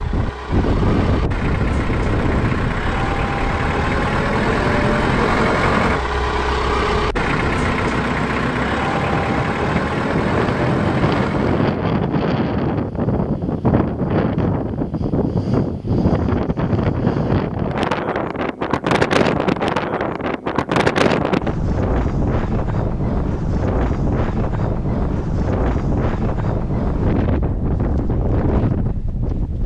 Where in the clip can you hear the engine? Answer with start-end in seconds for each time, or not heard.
0.0-11.7.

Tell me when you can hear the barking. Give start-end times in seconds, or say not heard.
not heard.